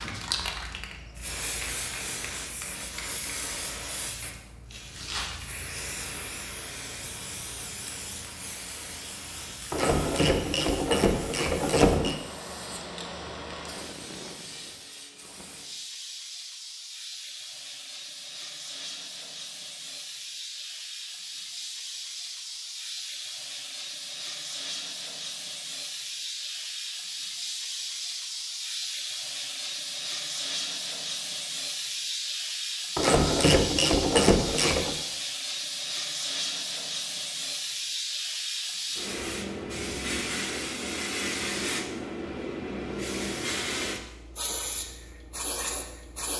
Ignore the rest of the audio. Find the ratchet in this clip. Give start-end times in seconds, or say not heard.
9.7-12.2, 33.0-35.0.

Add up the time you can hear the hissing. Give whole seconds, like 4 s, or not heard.
46 s.